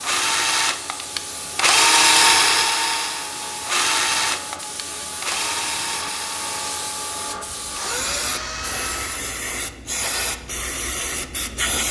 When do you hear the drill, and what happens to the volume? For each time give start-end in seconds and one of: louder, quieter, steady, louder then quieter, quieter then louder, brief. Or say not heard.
0.0-9.3 quieter.